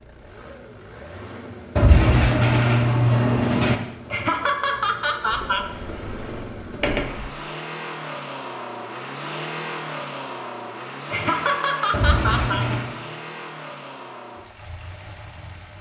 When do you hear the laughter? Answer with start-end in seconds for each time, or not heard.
4.1-5.7, 11.1-12.7.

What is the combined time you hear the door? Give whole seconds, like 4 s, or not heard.
5 s.